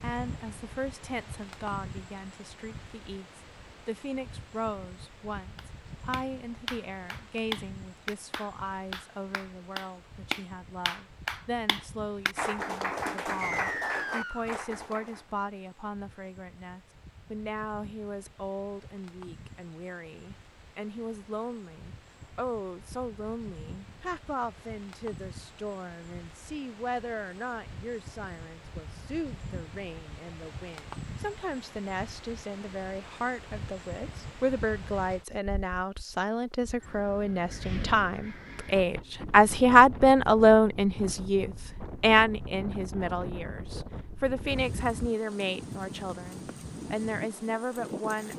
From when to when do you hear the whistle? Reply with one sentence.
You can hear the whistle from 13.4 to 14.5 s.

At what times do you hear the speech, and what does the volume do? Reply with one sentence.
The speech can be heard from 0.0 to 48.3 s, getting louder.